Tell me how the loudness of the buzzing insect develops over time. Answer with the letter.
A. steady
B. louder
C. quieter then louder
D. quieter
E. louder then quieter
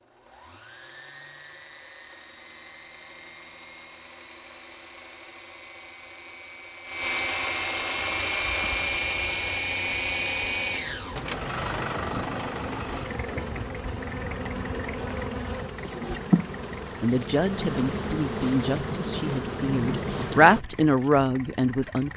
B.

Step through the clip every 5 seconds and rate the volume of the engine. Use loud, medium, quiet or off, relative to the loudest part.
quiet, loud, loud, quiet, quiet.